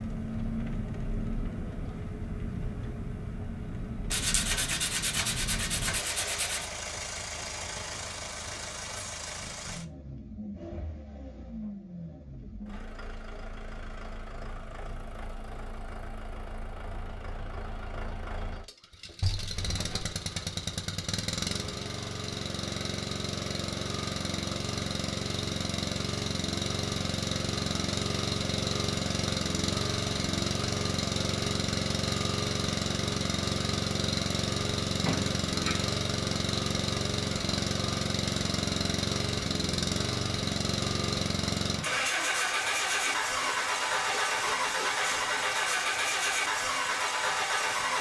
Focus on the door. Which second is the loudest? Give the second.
35 s.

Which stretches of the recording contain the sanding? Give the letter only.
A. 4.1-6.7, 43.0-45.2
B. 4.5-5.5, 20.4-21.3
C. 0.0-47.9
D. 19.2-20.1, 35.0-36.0
A.